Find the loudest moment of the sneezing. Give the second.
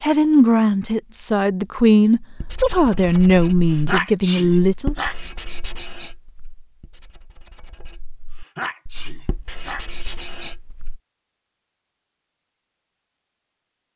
4 s.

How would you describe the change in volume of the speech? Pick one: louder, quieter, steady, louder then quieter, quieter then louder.
steady.